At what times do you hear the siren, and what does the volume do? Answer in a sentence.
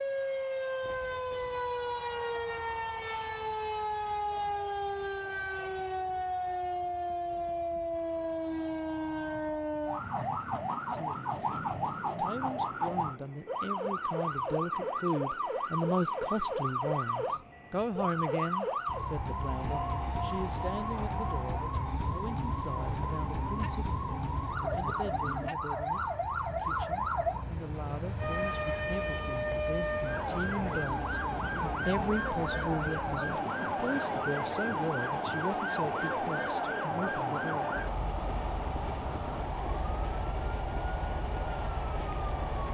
The siren can be heard from 0.0 to 42.6 s, at a steady volume.